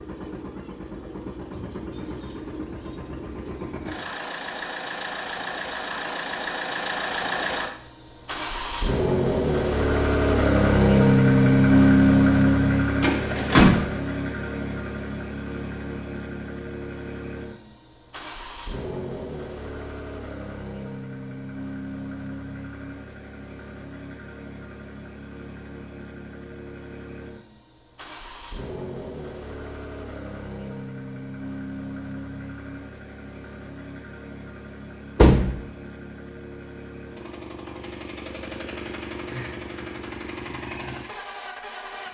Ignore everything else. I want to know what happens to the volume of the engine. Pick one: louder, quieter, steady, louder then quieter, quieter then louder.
louder then quieter.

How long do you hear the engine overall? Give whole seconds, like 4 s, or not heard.
42 s.